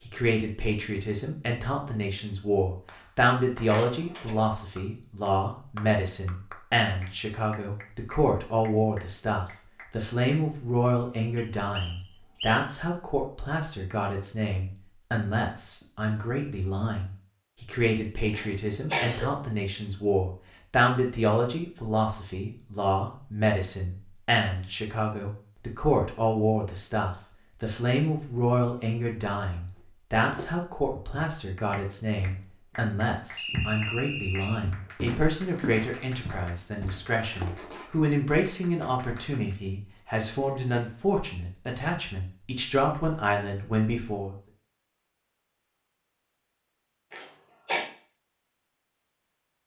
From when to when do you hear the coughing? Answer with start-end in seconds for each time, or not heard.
3.6-4.3, 18.3-19.4, 47.1-47.9.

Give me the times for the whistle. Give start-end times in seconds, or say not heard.
11.3-12.7, 33.4-34.6.